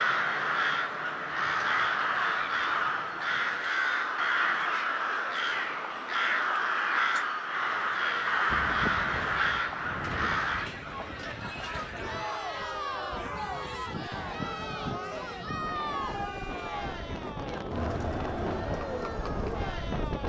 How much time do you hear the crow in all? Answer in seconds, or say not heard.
11 s.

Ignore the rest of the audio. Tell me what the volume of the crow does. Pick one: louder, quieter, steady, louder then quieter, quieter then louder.
steady.